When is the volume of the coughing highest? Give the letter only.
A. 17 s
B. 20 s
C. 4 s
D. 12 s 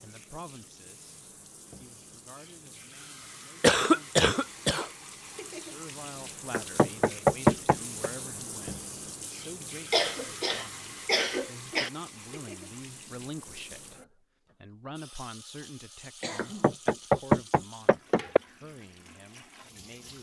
C.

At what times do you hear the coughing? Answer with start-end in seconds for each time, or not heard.
3.6-4.8, 9.9-11.9, 16.2-16.8.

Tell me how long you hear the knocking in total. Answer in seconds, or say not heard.
4 s.